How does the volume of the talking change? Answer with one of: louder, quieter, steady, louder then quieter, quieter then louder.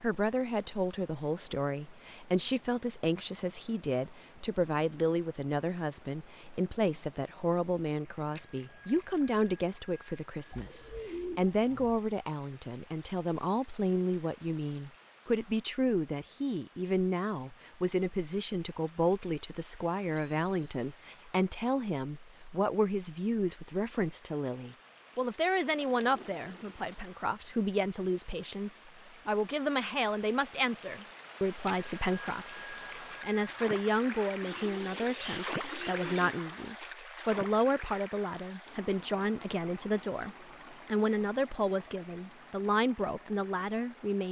steady.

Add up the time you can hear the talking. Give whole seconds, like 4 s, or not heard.
44 s.